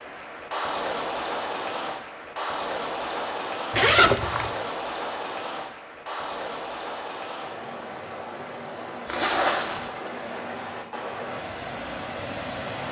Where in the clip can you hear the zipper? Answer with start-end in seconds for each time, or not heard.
3.7-4.5, 9.1-9.9.